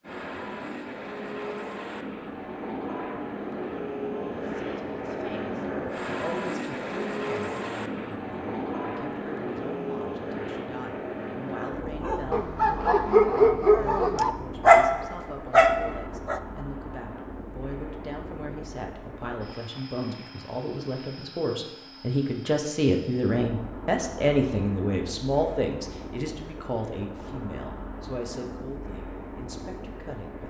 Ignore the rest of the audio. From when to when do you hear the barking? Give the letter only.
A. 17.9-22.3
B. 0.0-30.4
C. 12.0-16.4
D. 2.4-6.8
C.